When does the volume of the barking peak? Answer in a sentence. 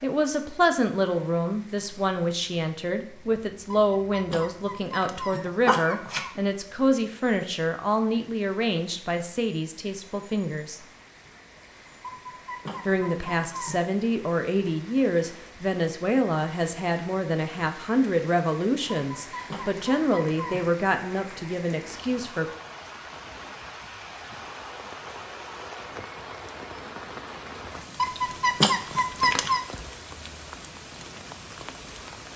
The loudest moment of the barking is at 29 seconds.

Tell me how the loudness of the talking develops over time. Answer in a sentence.
The volume of the talking stays about the same.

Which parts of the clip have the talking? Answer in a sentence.
The talking can be heard from 0.0 to 10.8 s and from 12.8 to 22.4 s.